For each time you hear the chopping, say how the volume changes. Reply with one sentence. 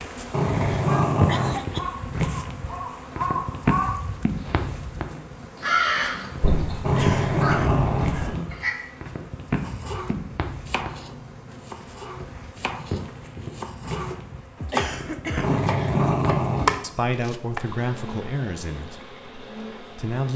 You can hear the chopping from 9.6 to 17.6 s, getting louder.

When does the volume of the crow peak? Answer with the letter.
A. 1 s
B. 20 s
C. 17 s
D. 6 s
D.